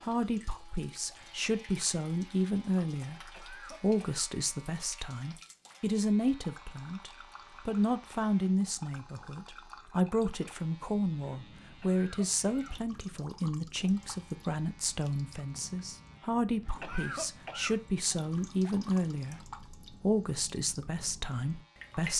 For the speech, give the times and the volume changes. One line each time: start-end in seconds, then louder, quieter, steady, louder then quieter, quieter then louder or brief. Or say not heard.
0.0-22.1 steady.